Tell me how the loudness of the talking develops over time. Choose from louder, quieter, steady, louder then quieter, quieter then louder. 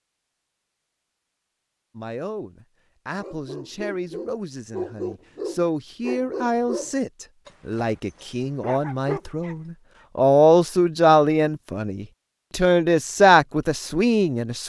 louder.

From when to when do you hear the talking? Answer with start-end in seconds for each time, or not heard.
1.9-14.6.